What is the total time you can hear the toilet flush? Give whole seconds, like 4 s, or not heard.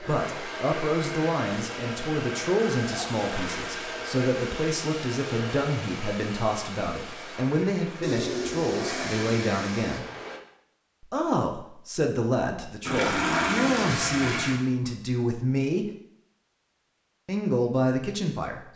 5 s.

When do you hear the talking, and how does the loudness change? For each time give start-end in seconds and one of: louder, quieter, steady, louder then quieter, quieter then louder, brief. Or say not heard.
0.0-10.1 steady
11.0-15.8 steady
17.2-18.7 brief.